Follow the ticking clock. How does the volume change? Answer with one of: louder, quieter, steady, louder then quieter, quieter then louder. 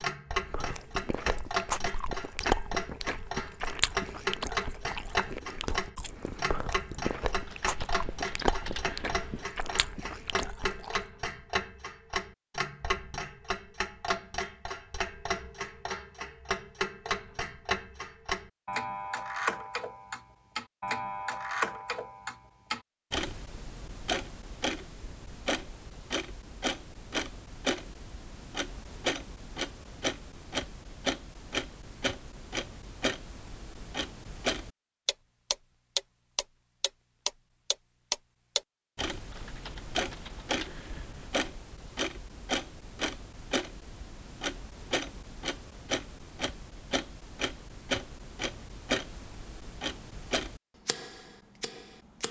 steady.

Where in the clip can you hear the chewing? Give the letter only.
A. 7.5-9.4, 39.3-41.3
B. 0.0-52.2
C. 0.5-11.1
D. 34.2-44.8
C.